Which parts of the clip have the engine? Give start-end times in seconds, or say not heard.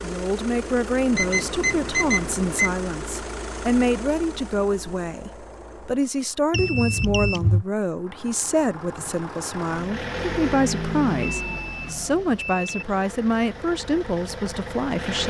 0.0-15.2.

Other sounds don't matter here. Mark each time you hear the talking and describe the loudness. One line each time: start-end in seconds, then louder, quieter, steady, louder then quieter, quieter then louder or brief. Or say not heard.
0.0-15.2 steady.